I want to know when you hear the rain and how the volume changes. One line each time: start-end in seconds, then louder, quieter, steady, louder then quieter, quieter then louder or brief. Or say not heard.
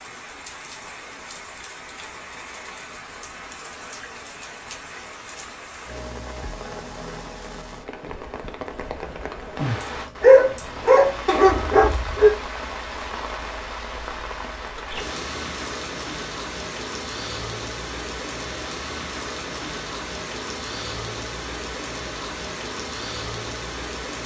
0.0-24.2 louder.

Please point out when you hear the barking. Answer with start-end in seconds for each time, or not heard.
10.2-12.3.